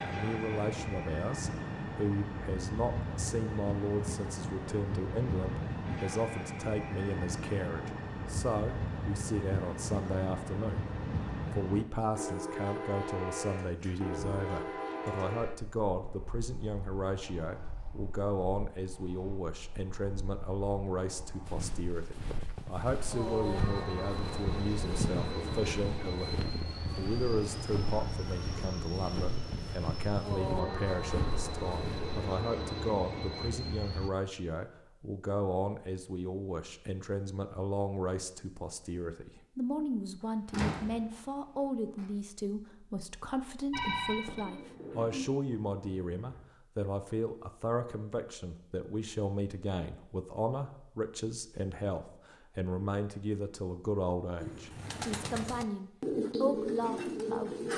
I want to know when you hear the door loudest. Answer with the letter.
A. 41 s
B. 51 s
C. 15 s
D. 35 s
A.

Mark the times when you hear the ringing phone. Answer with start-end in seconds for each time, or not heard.
43.7-44.5.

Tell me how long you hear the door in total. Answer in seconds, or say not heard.
3 s.